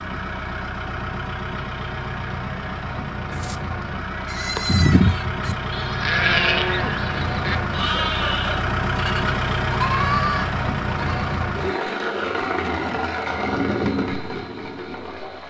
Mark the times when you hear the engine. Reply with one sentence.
You can hear the engine from 0.0 to 15.4 s.